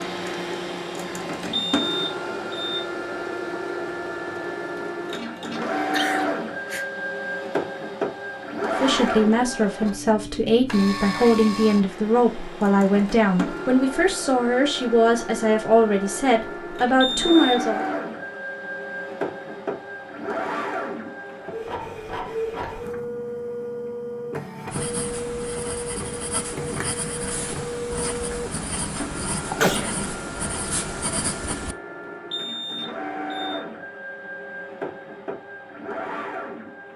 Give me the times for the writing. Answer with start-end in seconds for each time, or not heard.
24.7-31.8.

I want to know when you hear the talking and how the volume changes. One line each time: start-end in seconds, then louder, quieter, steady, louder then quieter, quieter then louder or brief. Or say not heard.
8.8-17.9 steady.